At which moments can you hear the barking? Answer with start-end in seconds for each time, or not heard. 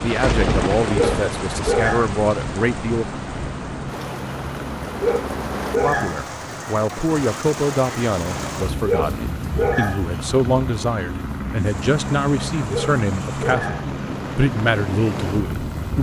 0.9-2.1, 5.0-6.2, 8.8-10.0, 12.7-13.8.